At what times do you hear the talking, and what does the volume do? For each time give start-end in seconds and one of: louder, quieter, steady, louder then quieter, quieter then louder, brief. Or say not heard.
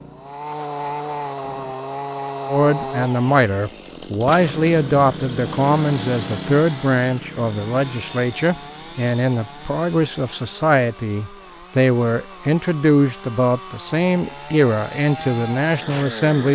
2.5-16.5 steady.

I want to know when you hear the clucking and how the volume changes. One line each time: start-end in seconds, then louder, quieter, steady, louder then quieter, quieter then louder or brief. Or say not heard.
not heard.